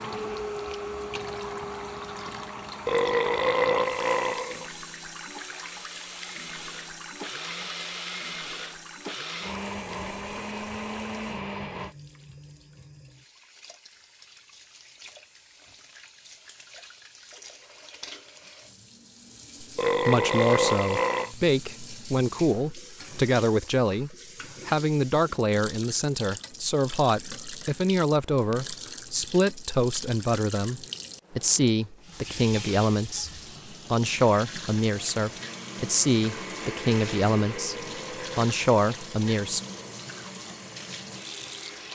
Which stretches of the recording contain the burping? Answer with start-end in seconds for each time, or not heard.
2.9-4.7, 19.8-21.3, 37.5-40.0.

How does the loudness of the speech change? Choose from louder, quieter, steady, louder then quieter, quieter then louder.
steady.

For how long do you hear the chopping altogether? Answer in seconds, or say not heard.
not heard.